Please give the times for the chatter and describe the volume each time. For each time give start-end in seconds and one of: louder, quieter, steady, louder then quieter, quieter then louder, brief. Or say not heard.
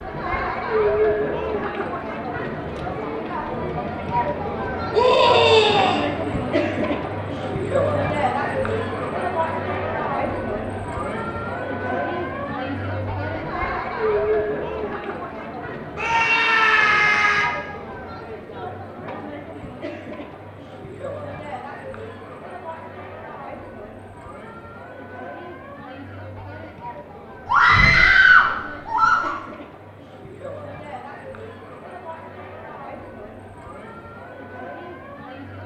0.0-35.6 quieter.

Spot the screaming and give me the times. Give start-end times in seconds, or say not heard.
4.9-6.0, 15.9-17.5, 27.4-29.4.